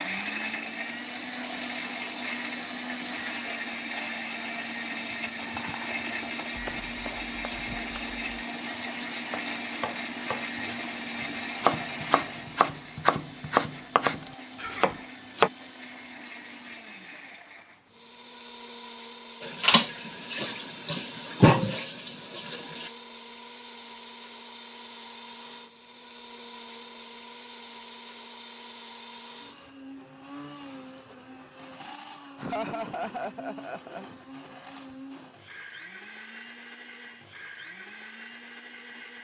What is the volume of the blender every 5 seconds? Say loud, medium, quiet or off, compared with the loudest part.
loud, loud, loud, medium, medium, medium, medium, medium.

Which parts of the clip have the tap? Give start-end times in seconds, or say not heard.
19.4-22.9.